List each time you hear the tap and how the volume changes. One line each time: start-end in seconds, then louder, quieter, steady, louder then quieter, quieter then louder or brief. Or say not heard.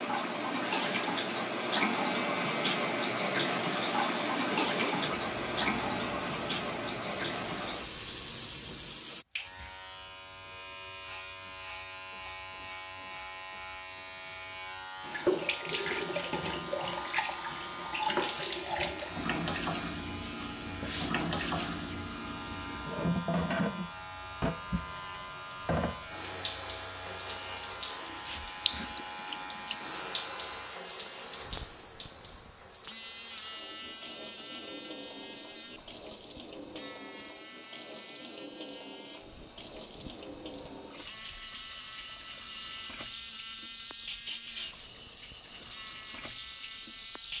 0.0-9.2 quieter
15.0-47.3 quieter.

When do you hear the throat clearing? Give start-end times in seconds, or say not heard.
4.5-5.3.